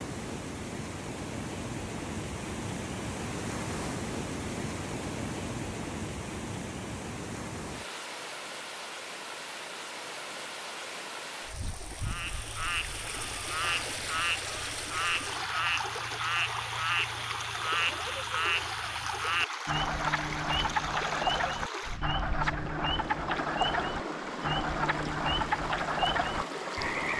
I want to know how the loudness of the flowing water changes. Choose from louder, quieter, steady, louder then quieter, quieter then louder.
steady.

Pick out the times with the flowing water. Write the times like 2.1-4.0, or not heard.
0.0-27.1.